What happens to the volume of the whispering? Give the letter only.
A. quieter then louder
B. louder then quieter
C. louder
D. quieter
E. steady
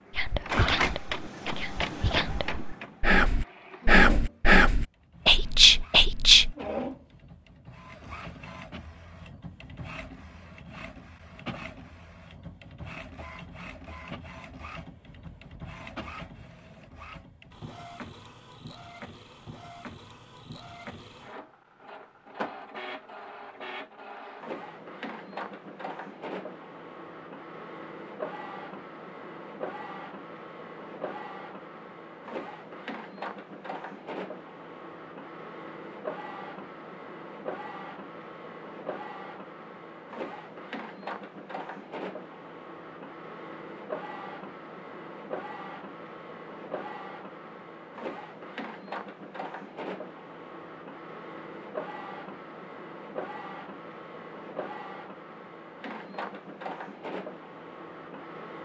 C.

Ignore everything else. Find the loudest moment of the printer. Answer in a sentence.
The volume of the printer peaks at 1 second.